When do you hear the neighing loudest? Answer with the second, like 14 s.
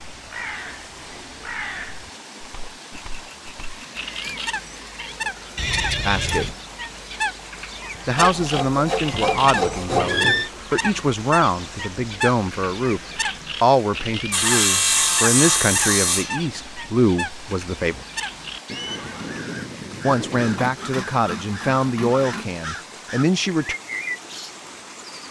10 s.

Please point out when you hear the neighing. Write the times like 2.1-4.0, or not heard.
5.5-6.5, 9.1-10.5, 18.6-20.7.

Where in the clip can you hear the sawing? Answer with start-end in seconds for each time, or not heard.
2.9-4.7, 8.2-10.1, 14.3-16.4, 20.4-22.6.